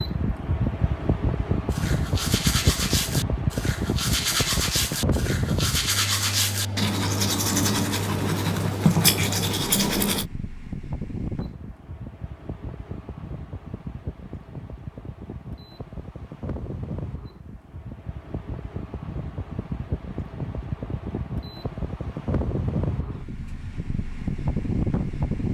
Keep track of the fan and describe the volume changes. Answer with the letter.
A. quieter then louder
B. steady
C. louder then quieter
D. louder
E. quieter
A.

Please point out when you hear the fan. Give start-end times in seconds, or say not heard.
0.0-25.4.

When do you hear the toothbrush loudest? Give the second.
9 s.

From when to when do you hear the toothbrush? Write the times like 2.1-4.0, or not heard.
1.7-10.2.